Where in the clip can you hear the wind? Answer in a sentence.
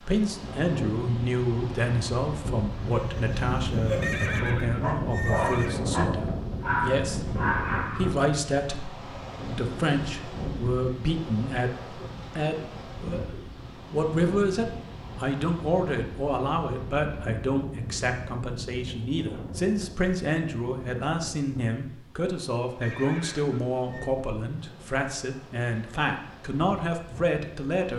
The wind can be heard from 0.0 to 27.9 s.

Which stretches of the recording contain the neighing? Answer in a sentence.
The neighing can be heard from 4.0 to 5.8 s and from 22.8 to 24.1 s.